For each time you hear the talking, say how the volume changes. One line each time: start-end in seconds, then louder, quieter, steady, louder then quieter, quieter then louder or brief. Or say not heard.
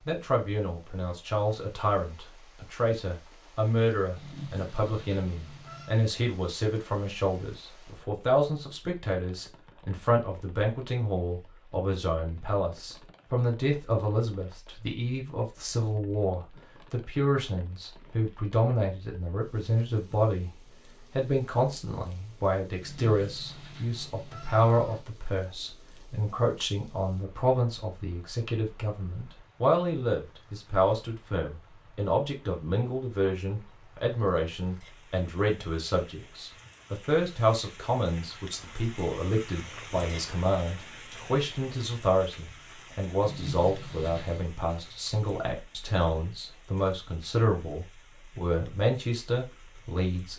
0.1-20.5 steady
21.1-50.3 steady.